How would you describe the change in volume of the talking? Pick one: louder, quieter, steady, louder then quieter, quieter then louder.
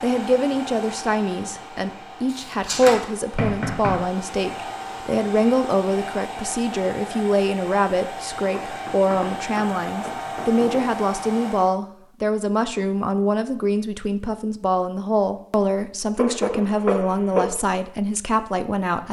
steady.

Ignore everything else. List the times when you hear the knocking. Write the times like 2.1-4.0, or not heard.
2.3-4.1, 8.6-10.8, 16.1-17.4.